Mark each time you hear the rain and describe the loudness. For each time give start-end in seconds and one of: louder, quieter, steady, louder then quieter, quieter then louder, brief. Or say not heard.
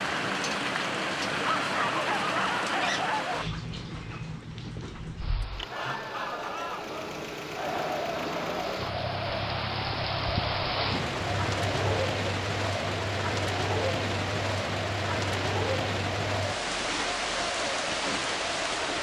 0.0-18.9 quieter then louder.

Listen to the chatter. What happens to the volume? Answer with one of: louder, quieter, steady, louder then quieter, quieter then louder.
steady.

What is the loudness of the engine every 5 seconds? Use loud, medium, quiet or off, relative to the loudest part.
off, loud, loud, off.